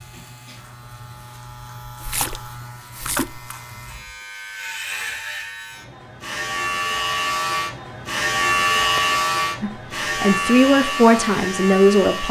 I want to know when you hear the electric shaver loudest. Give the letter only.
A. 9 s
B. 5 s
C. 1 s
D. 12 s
A.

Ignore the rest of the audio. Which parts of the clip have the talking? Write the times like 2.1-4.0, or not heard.
9.6-12.2.